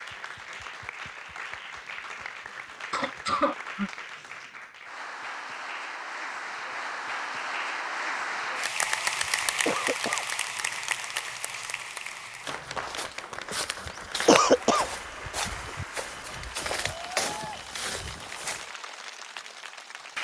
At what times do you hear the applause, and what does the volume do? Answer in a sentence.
You can hear the applause from 0.0 to 20.1 s, getting louder then quieter.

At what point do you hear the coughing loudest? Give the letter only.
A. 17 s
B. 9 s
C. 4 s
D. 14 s
D.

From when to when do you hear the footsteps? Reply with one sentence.
The footsteps can be heard from 12.4 to 18.7 s.